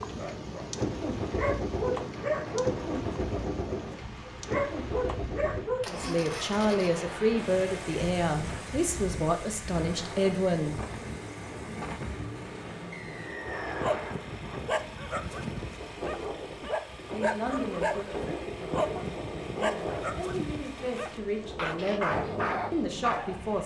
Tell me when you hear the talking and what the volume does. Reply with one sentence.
You can hear the talking from 5.9 to 10.8 s, at a steady volume; and from 17.0 to 23.6 s, getting quieter then louder.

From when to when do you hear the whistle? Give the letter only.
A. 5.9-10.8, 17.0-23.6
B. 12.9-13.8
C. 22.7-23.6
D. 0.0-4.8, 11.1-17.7
B.